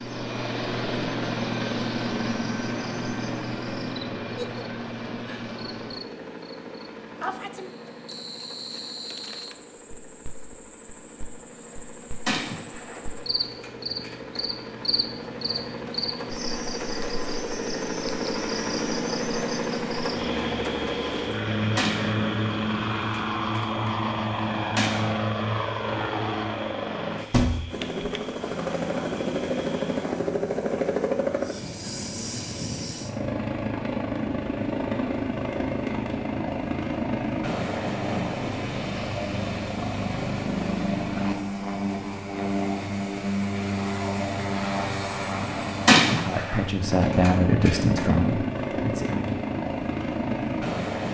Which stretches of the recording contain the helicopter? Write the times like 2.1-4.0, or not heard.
0.0-51.0.